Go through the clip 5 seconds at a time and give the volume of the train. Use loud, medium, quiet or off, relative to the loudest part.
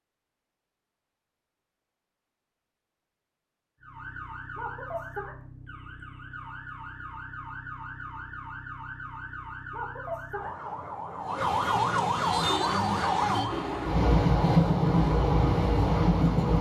off, off, loud, loud.